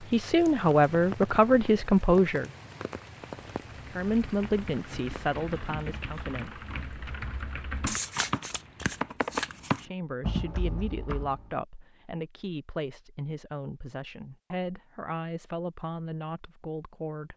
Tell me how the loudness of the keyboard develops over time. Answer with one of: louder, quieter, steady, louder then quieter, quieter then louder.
louder.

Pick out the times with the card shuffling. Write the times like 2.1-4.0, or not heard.
7.8-9.8.